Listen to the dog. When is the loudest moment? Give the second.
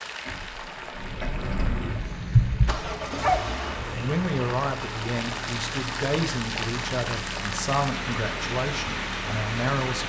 3 s.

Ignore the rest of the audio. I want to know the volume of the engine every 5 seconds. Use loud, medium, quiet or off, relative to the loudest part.
loud, medium.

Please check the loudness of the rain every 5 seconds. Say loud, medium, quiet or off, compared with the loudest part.
medium, loud.